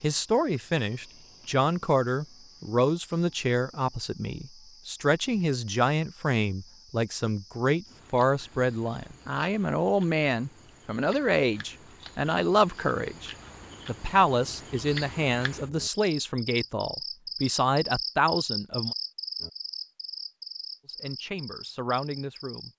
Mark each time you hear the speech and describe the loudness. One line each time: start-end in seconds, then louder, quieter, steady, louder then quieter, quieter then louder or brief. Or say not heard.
0.0-18.9 steady
20.9-22.7 brief.